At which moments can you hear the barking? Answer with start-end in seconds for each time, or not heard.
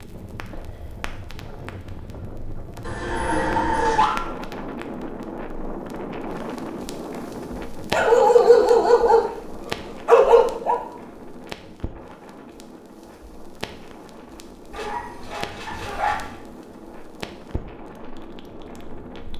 2.8-4.2, 7.9-10.8, 14.7-16.4.